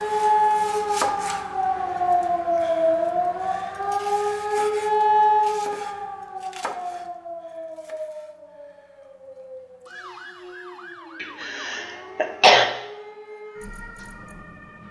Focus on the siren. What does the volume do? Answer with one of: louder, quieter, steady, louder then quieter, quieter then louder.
quieter.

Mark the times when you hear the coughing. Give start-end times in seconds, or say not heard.
11.2-12.7.